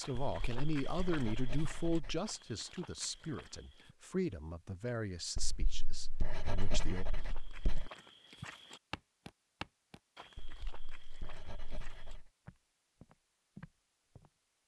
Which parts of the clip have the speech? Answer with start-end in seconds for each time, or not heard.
0.0-7.0.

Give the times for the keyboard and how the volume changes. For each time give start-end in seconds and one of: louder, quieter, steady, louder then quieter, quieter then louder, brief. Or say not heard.
not heard.